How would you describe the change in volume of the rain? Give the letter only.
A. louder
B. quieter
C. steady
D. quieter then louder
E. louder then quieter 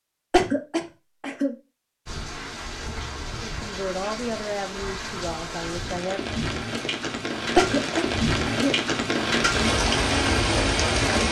A.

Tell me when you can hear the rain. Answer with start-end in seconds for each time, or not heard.
2.0-11.2.